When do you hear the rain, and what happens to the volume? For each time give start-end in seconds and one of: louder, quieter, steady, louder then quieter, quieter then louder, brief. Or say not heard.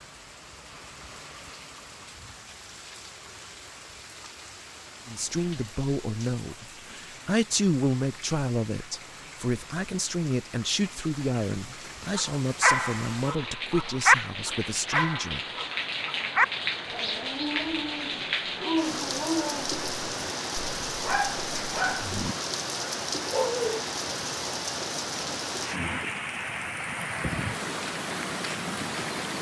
0.0-29.3 louder.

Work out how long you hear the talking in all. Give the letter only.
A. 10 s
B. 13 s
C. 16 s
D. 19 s
A.